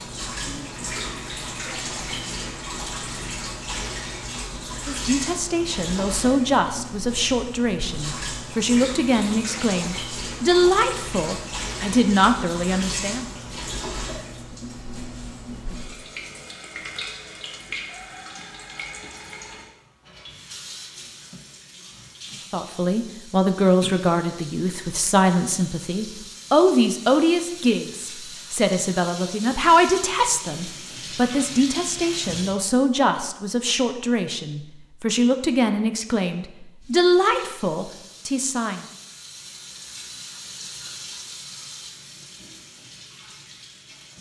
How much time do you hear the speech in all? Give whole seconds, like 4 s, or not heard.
25 s.